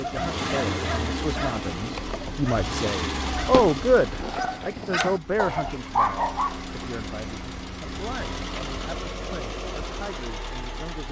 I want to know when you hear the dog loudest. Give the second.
6 s.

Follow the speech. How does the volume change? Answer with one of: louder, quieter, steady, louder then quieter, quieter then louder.
louder then quieter.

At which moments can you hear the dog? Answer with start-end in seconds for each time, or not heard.
0.0-6.6.